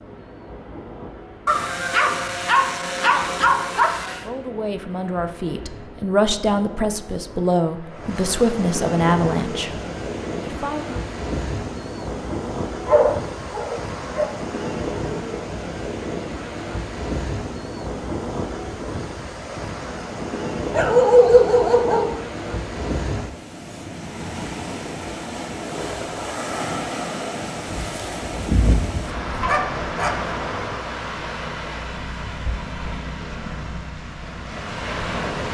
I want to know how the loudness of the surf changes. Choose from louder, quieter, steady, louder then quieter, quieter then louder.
louder.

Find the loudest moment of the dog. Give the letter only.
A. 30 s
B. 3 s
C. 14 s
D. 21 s
D.